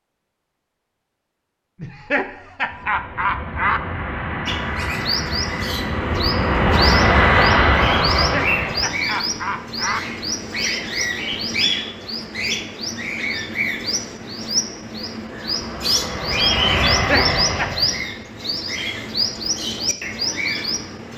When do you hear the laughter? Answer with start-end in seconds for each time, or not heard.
1.8-3.8, 8.2-10.0, 16.9-17.7.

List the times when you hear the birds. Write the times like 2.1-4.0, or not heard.
4.5-21.1.